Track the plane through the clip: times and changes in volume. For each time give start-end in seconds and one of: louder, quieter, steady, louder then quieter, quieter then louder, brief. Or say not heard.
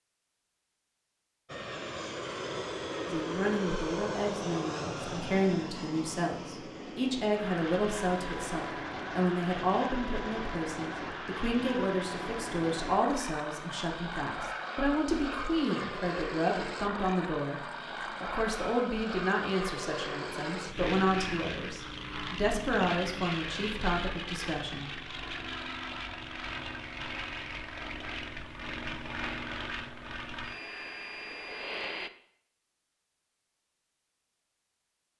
1.4-32.1 steady.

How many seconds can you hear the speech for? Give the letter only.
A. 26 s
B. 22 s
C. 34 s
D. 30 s
B.